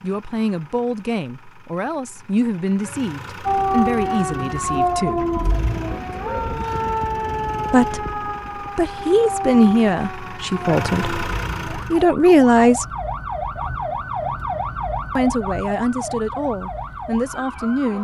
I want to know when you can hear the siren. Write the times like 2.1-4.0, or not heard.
3.5-17.9.